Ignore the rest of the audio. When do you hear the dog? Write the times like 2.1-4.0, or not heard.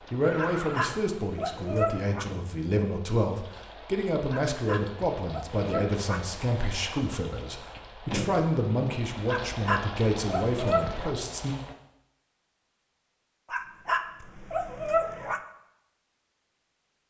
0.3-2.2, 4.3-6.4, 9.2-11.1, 13.5-15.4.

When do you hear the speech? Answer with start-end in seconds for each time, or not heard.
0.1-11.6.